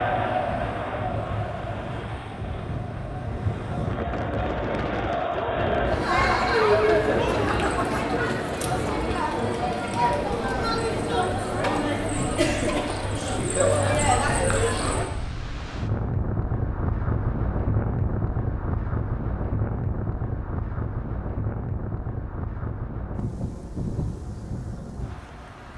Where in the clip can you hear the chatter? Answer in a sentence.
The chatter can be heard from 0.0 to 15.1 s.